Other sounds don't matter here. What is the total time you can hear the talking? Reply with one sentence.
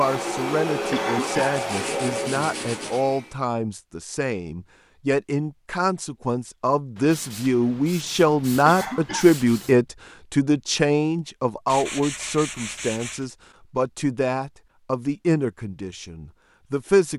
You can hear the talking for 17 seconds altogether.